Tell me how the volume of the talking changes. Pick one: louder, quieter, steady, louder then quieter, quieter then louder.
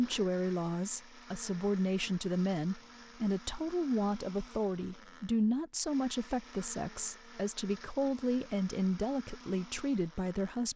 steady.